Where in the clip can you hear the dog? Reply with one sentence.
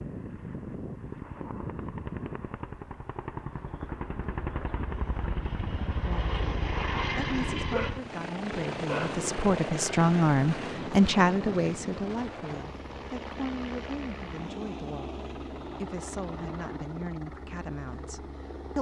The dog can be heard from 7.7 to 8.1 s and from 8.8 to 9.2 s.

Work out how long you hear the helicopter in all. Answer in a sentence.
The helicopter can be heard for 19 seconds in total.